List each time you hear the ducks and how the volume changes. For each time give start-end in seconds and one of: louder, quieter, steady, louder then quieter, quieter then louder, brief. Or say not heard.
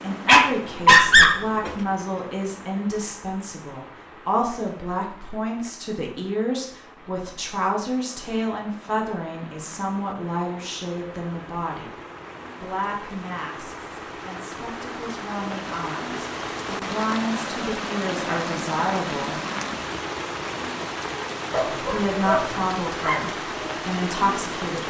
not heard.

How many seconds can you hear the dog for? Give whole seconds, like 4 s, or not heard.
3 s.